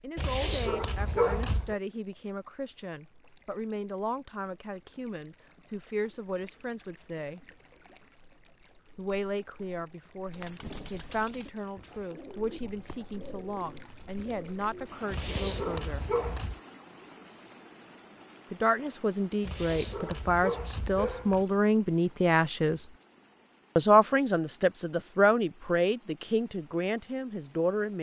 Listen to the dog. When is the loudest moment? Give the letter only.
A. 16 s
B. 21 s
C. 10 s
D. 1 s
D.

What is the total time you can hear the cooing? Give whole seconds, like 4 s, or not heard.
5 s.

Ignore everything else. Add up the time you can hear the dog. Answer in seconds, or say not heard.
5 s.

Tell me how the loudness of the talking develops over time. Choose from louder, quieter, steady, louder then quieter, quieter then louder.
louder.